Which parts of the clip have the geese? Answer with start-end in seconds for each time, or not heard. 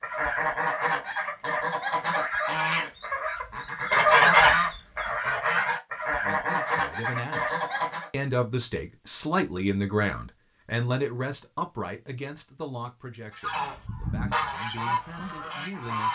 0.0-8.1, 13.3-16.0.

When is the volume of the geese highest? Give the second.
4 s.